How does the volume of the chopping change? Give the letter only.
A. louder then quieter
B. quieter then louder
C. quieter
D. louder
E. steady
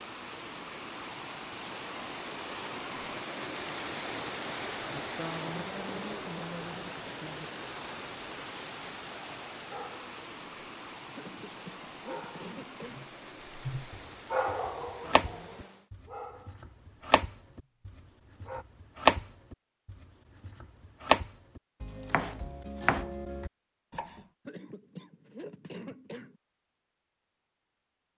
A.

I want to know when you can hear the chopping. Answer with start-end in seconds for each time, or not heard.
13.9-24.2.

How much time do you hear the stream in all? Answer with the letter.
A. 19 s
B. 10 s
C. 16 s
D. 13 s
C.